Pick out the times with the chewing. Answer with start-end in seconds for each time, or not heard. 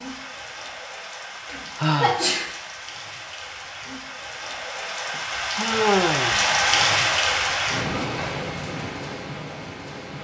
not heard.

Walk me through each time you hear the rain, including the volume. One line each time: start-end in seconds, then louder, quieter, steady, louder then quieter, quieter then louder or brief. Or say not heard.
0.0-10.1 louder then quieter.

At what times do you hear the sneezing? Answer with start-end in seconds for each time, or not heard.
1.4-2.5.